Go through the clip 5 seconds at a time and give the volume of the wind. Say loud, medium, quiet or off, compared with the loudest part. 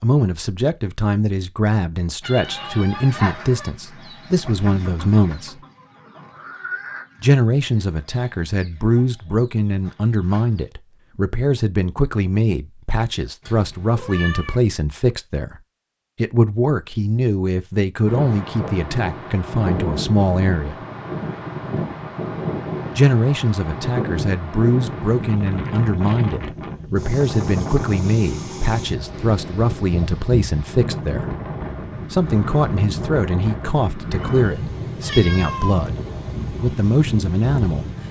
off, off, off, loud, loud, loud, loud, loud.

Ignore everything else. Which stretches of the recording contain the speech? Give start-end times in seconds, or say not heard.
0.0-5.6, 7.2-15.6, 16.1-20.8, 22.9-31.3, 32.1-35.9, 36.5-37.9.